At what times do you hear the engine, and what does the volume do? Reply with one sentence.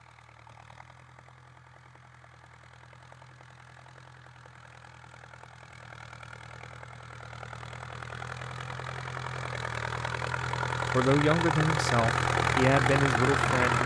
You can hear the engine from 0.0 to 13.8 s, getting louder.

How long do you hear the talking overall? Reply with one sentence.
The talking can be heard for 3 seconds in total.